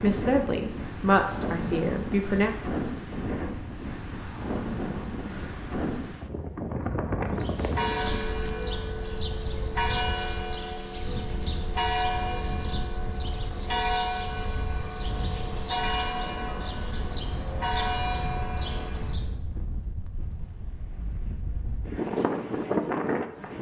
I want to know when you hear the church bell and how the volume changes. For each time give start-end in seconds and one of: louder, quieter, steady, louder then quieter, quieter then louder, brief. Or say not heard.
7.2-19.3 steady.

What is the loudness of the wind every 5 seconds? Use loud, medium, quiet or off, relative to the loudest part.
loud, loud, medium, medium, loud.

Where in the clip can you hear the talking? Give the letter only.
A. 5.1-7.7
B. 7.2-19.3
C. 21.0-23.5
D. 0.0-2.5
D.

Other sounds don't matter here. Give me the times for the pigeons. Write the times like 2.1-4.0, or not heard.
not heard.